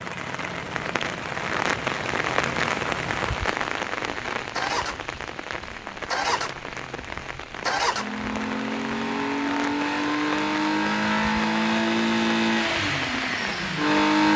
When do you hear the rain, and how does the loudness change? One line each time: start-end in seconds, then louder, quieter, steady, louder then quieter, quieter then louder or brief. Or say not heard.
0.0-14.1 quieter.